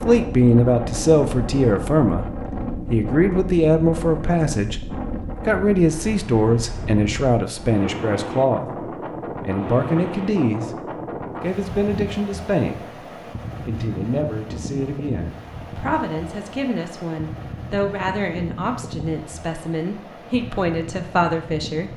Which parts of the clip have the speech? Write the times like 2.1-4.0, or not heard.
0.1-10.7, 11.4-12.8, 13.6-21.9.